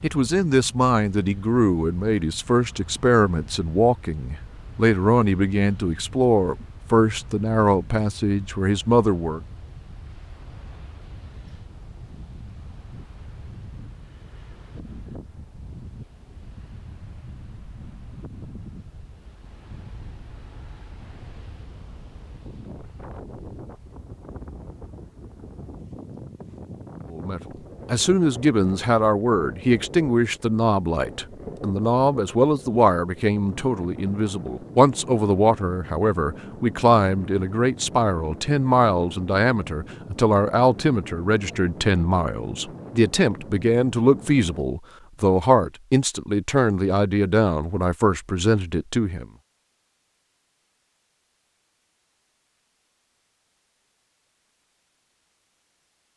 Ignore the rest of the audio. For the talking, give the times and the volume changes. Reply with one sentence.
The talking can be heard from 0.0 to 9.4 s, at a steady volume; and from 27.1 to 49.2 s, at a steady volume.